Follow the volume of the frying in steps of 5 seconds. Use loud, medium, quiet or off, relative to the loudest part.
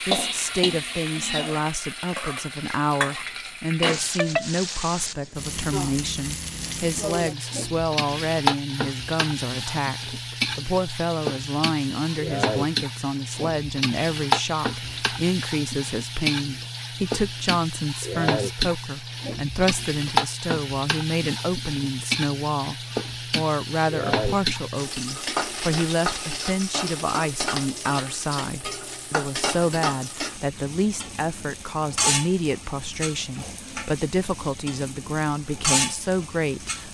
loud, loud, loud, loud, loud, loud, medium, loud.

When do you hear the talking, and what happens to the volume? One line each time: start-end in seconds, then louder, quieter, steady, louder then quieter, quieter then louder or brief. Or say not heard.
0.1-36.9 steady.